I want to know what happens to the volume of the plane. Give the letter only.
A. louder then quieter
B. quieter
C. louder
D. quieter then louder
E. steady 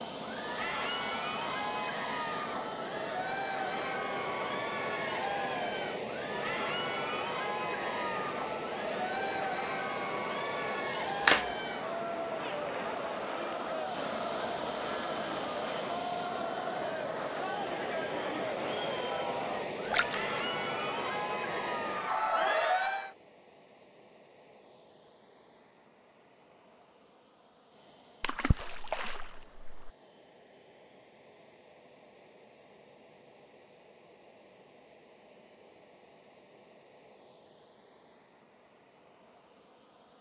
B.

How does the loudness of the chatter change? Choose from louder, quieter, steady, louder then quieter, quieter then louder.
steady.